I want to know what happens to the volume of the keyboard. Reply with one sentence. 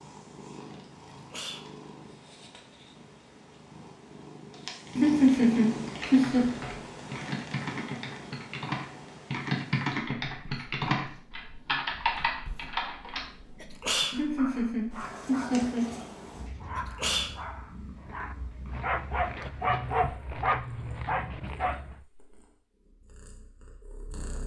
The loudness of the keyboard goes up.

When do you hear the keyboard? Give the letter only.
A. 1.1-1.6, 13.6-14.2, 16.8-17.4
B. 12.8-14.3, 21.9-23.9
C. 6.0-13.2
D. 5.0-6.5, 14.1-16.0
C.